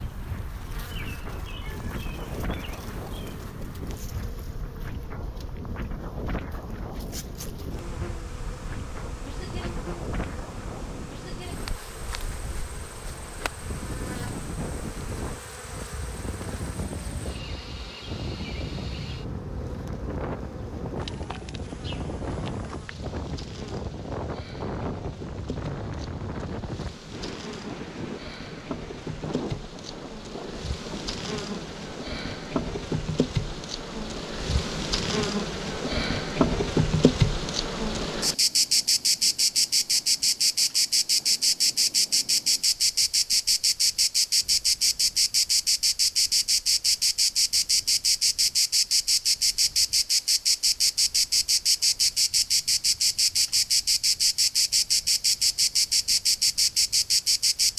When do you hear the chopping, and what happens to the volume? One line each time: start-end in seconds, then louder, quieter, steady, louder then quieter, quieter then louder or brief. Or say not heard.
not heard.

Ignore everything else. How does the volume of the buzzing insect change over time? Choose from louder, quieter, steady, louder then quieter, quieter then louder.
louder.